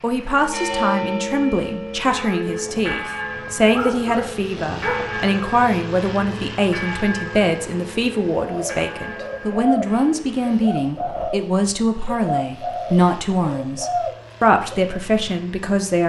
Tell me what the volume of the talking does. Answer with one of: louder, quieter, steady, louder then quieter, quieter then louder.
steady.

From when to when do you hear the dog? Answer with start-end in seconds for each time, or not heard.
3.7-5.2.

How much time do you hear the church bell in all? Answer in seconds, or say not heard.
10 s.